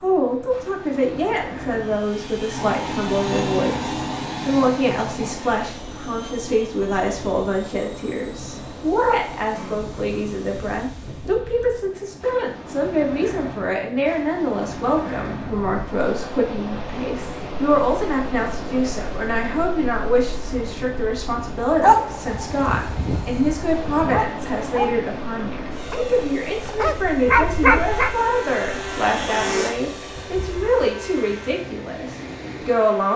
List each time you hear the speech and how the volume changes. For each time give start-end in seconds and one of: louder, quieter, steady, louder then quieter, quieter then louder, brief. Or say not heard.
0.0-33.1 steady.